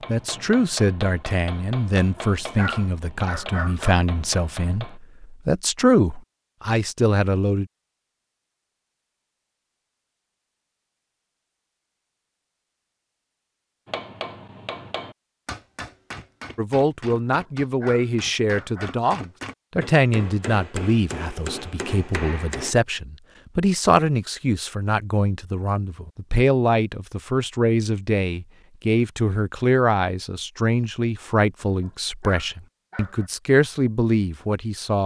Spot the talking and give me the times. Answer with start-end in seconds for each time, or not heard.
0.1-7.7, 16.6-35.0.